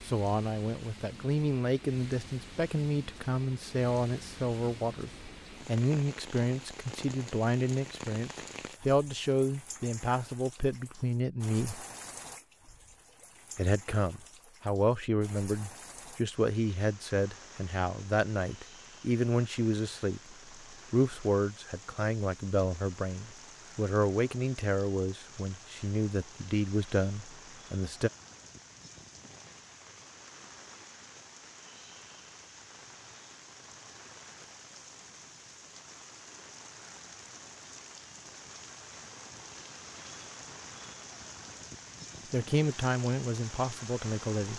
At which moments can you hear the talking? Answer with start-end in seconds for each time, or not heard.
0.0-11.8, 13.6-28.1, 42.3-44.5.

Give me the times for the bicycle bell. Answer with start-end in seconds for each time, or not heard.
not heard.